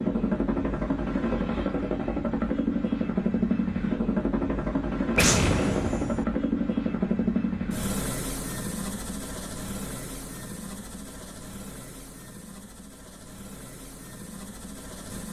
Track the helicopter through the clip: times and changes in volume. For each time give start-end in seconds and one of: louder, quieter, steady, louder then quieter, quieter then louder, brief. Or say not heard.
0.0-15.2 quieter.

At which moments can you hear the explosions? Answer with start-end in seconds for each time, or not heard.
5.2-6.2.